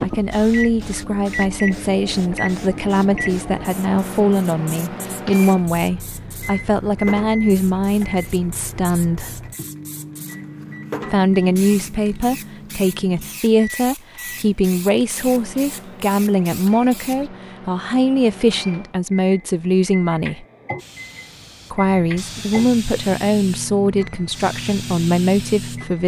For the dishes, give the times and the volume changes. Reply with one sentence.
The dishes can't be heard in this clip.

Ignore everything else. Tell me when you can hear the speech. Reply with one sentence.
The speech can be heard from 0.0 to 9.3 s, from 11.1 to 20.4 s and from 21.7 to 26.0 s.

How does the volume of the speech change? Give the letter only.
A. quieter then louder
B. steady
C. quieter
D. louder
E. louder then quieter
B.